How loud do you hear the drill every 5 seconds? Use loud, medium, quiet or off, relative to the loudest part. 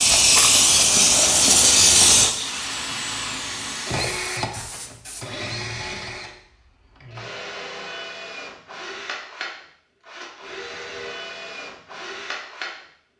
loud, medium, medium.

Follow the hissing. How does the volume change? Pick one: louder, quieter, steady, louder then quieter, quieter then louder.
quieter.